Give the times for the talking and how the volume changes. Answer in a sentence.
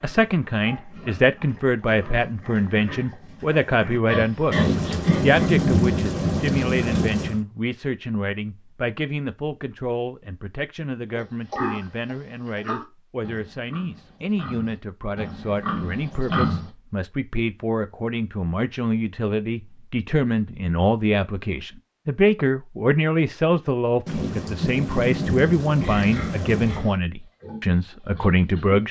You can hear the talking from 0.0 to 28.8 s, getting quieter then louder.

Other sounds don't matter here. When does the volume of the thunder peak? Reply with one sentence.
The volume of the thunder peaks at 6 seconds.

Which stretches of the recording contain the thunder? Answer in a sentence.
The thunder can be heard from 4.5 to 7.4 s and from 24.1 to 26.9 s.